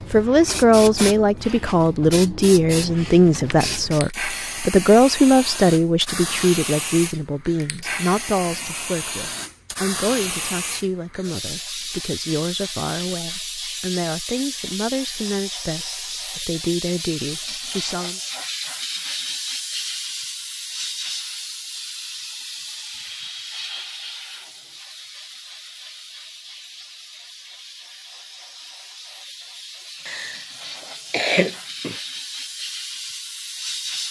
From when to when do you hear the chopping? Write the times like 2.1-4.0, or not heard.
not heard.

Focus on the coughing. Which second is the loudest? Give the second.
31 s.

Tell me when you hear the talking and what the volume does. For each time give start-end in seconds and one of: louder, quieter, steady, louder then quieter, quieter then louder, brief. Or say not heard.
0.1-18.2 quieter.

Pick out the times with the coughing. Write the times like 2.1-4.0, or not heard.
30.1-31.9.